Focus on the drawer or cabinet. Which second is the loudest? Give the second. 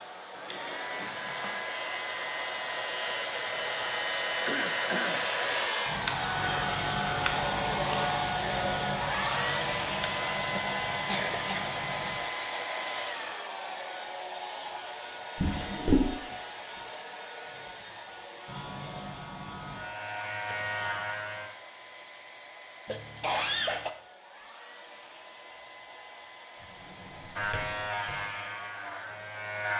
16 s.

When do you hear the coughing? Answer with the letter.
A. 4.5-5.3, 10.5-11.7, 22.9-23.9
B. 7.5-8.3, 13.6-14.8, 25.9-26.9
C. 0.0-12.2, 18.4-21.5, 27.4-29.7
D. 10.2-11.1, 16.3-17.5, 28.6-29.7
A.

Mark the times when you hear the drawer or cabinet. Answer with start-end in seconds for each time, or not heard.
0.3-1.6, 15.3-16.1, 26.6-28.2.